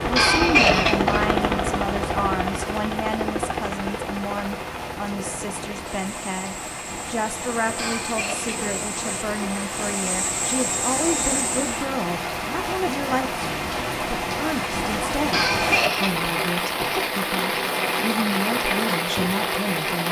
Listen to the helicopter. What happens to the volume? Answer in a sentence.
The loudness of the helicopter goes down, then up.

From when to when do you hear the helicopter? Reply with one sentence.
The helicopter can be heard from 0.0 to 11.8 s.